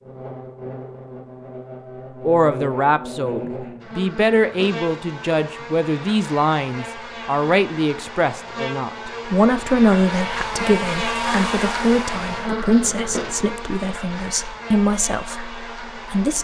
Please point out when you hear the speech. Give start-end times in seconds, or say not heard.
2.2-16.3.